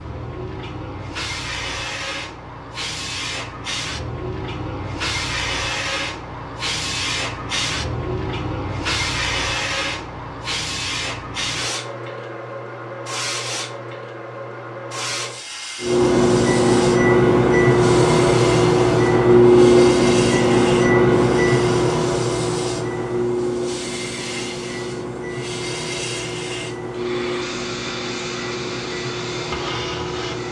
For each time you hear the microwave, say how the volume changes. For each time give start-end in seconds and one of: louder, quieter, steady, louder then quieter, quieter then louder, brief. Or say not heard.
15.8-30.4 quieter.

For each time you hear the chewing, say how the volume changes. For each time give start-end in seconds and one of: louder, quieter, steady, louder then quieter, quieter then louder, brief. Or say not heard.
not heard.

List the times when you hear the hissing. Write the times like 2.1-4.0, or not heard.
0.0-30.4.